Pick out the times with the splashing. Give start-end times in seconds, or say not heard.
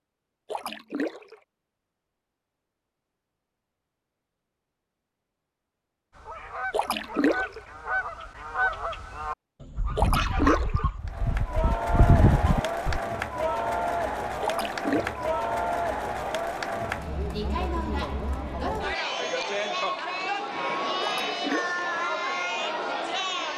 0.5-1.4, 6.7-7.6, 9.9-10.8, 14.4-15.2, 21.0-21.8.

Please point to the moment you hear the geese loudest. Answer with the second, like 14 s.
12 s.